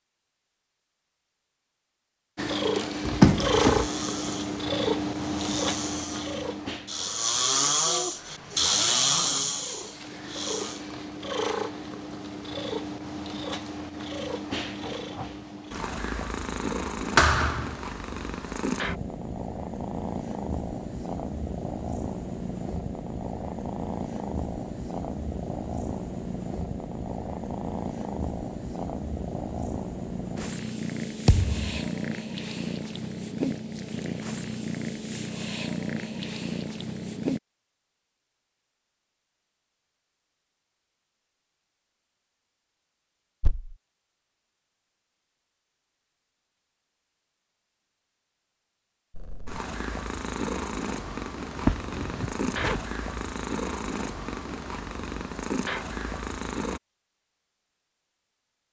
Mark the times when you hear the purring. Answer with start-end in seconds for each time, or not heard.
2.4-37.4, 49.1-56.8.